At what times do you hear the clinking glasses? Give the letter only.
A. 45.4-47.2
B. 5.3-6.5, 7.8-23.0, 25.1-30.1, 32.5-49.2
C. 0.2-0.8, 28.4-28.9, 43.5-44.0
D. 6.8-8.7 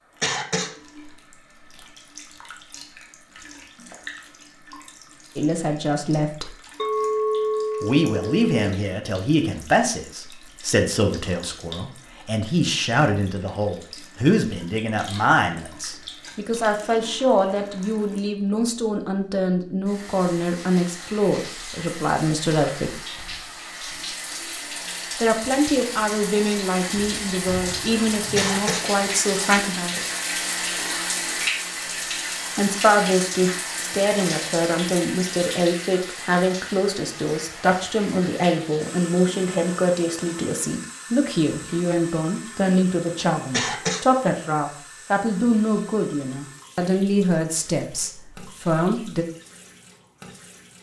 D.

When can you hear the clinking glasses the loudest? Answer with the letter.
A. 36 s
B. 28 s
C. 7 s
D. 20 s
C.